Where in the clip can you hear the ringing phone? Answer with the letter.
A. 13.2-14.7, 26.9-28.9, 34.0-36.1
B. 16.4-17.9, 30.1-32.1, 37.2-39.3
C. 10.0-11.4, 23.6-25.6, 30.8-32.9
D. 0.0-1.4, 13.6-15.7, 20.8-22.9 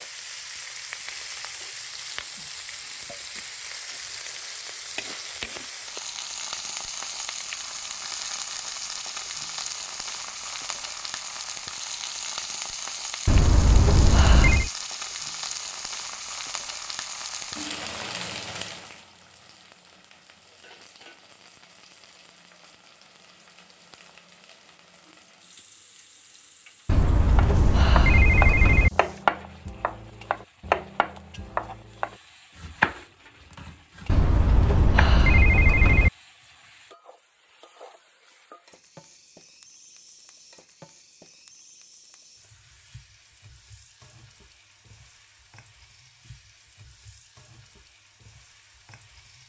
A.